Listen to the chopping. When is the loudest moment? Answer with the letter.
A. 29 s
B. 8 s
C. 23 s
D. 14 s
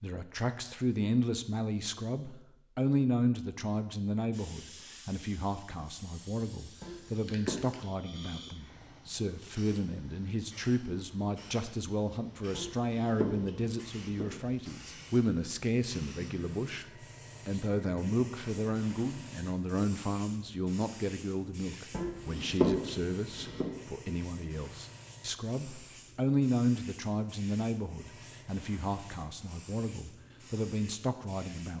C.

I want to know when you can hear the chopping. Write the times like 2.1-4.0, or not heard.
6.8-8.5, 12.5-14.6, 21.9-23.6.